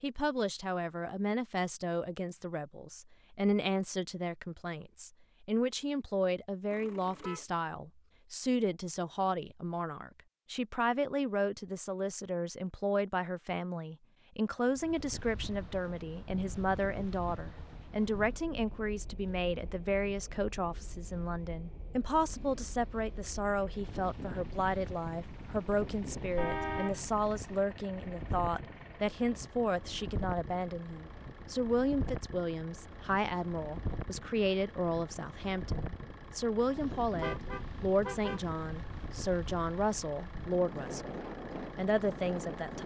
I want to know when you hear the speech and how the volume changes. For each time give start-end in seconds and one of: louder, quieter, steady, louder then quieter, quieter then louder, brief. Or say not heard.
0.0-42.8 steady.